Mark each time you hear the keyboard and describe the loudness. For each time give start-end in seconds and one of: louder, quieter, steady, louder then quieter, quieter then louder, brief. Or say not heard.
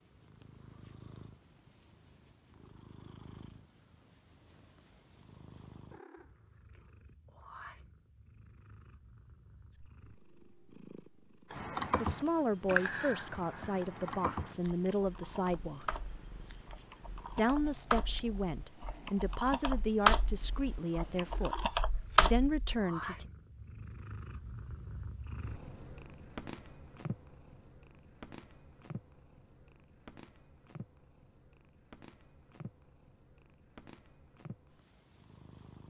11.5-22.8 quieter then louder.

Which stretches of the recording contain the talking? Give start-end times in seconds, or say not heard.
12.0-15.9, 17.4-23.2.